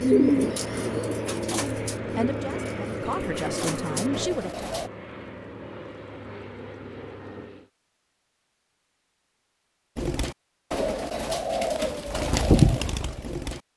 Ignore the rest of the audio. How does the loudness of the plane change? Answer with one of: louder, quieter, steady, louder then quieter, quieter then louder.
quieter.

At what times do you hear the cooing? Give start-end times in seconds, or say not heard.
0.0-4.9, 9.9-13.6.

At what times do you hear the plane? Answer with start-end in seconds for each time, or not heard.
0.0-7.7.